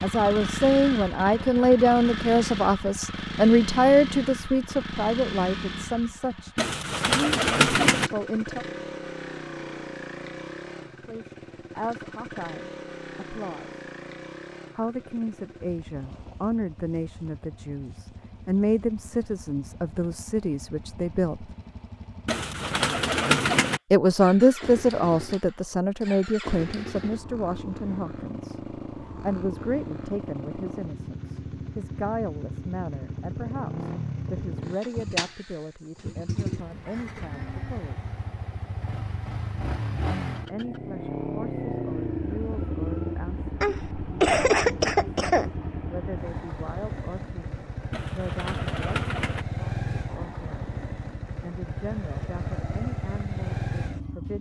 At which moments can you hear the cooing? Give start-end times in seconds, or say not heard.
6.5-8.1, 22.2-23.8, 47.9-49.5.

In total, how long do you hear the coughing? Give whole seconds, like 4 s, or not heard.
2 s.